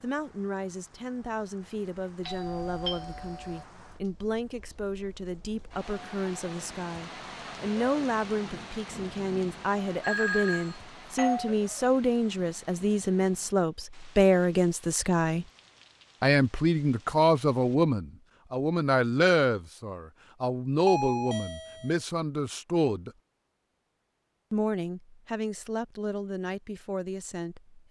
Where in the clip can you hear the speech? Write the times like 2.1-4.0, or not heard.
0.0-15.4, 16.2-23.1, 24.5-27.8.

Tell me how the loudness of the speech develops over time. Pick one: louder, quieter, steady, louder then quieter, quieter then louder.
louder then quieter.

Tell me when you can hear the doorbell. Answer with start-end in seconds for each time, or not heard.
2.2-3.6, 10.0-11.6, 20.9-21.9.